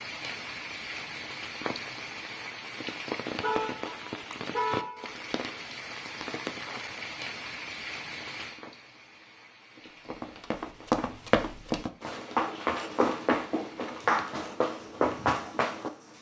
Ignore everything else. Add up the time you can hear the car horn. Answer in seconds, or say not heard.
2 s.